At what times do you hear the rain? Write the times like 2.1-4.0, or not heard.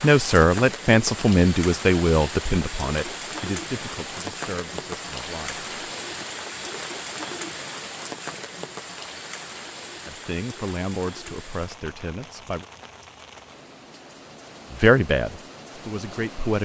0.0-16.5.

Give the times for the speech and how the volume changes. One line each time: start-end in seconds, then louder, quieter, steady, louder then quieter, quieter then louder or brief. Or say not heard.
0.0-5.7 quieter
10.1-12.7 brief
14.7-16.5 brief.